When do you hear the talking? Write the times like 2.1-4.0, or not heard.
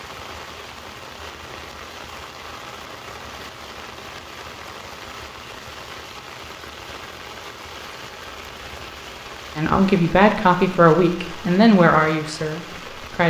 9.6-13.2.